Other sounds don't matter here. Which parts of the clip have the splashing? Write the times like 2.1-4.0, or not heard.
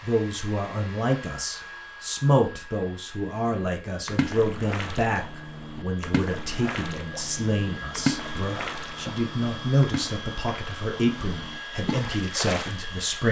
3.5-12.8.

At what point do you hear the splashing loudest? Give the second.
8 s.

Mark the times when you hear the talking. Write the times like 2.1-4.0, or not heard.
0.0-13.2.